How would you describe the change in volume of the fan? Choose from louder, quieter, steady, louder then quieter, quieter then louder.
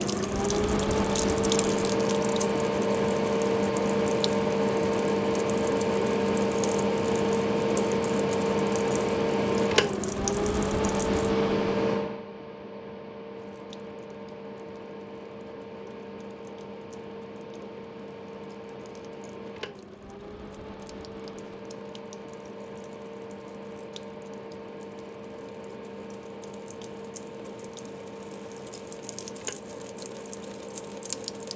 quieter.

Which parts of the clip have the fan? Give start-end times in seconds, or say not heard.
0.0-31.5.